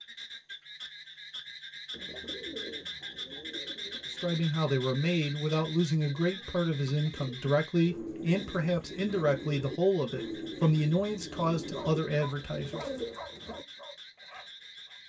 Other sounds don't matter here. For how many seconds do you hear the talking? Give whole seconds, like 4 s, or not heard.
9 s.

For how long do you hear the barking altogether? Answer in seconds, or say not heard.
3 s.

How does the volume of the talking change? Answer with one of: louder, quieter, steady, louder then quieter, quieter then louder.
steady.